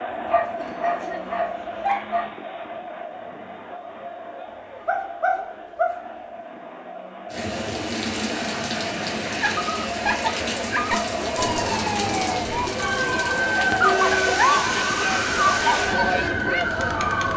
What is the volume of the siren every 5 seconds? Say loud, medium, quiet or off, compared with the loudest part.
off, off, loud, loud.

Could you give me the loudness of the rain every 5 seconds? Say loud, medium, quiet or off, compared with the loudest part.
off, loud, loud, loud.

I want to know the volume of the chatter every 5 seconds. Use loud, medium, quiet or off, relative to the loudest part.
medium, medium, loud, loud.